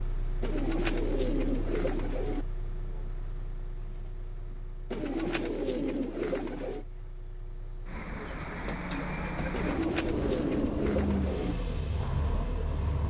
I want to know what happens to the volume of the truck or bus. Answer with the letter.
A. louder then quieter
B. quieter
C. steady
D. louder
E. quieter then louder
E.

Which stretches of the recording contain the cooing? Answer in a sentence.
You can hear the cooing from 0.4 to 2.5 s, from 4.9 to 6.8 s and from 9.5 to 11.6 s.